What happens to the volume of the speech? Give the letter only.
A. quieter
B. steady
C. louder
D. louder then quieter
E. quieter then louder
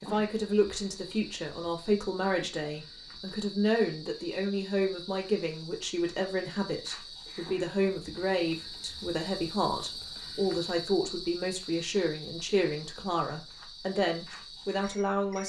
B.